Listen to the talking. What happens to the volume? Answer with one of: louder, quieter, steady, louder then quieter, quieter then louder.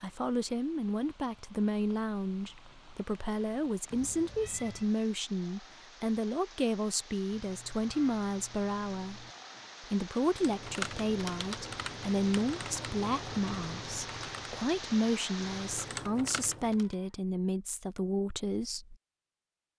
steady.